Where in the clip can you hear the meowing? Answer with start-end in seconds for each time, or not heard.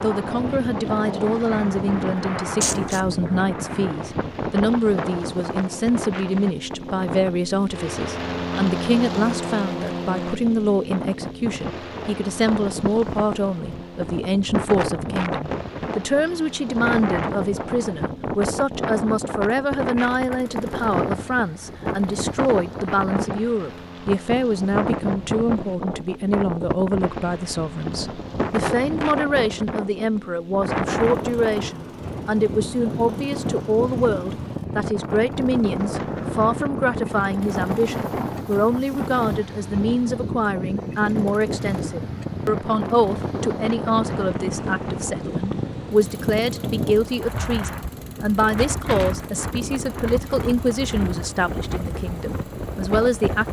2.6-3.1.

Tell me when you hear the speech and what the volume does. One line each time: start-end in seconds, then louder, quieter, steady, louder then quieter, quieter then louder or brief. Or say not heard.
0.0-53.4 steady.